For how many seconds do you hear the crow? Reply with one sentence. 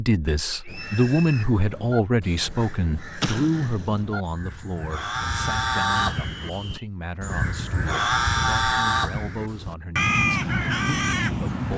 The crow can be heard for 11 seconds in total.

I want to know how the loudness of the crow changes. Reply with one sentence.
The volume of the crow goes up.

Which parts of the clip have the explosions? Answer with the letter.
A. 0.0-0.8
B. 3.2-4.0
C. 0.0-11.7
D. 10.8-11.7
B.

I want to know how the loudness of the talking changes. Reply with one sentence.
The volume of the talking goes down.